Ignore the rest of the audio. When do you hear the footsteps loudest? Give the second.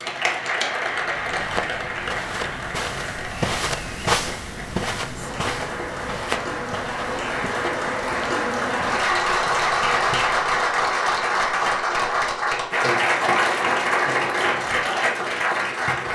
4 s.